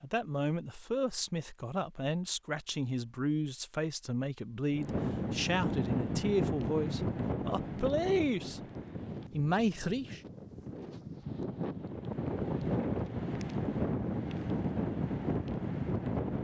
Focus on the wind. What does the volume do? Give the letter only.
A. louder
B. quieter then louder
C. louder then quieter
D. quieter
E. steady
B.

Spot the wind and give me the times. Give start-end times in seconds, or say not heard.
4.7-16.3.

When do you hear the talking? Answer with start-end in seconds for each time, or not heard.
0.0-8.6, 9.3-10.2.